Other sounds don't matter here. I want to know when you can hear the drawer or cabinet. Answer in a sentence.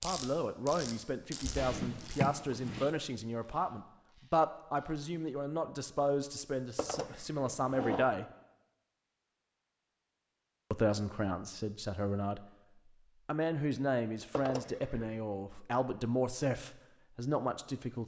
You can hear the drawer or cabinet from 1.6 to 2.9 s, from 6.8 to 8.1 s and from 14.3 to 15.1 s.